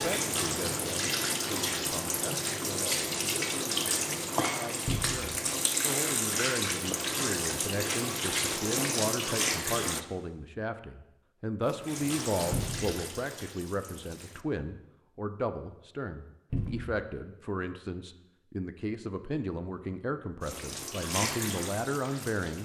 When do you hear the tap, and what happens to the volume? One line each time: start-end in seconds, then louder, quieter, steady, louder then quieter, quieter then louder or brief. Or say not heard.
0.0-10.0 steady
11.6-14.4 brief
20.4-22.6 brief.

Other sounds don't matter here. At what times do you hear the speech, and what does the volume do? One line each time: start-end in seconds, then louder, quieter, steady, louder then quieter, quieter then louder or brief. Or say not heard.
0.0-22.6 louder.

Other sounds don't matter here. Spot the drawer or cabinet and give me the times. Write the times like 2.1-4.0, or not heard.
4.8-5.3, 12.5-12.9, 16.5-17.0.